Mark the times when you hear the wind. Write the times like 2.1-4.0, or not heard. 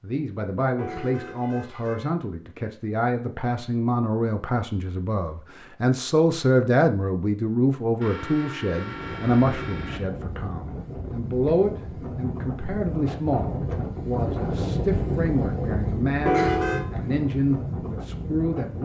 8.8-18.7.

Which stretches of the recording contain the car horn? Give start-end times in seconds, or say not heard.
0.8-2.1, 8.0-10.0, 16.2-16.9.